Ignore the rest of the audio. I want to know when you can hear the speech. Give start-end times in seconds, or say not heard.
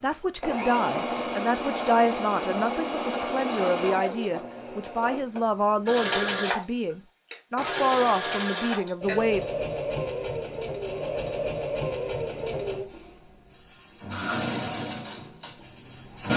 0.0-9.4.